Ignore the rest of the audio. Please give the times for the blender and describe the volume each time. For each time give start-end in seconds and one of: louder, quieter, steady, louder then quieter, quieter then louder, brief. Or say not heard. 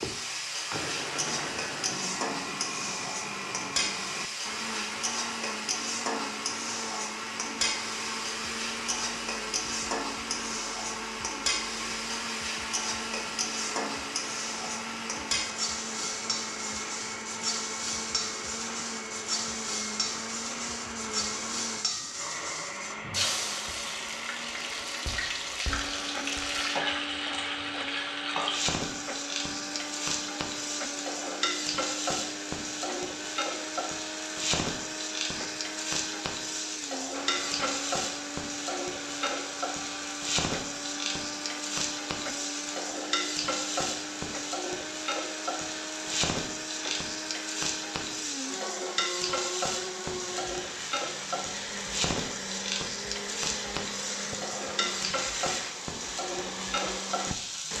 0.0-57.7 steady.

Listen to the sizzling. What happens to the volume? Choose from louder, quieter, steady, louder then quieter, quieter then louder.
steady.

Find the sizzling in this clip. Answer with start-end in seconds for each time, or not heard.
0.0-57.7.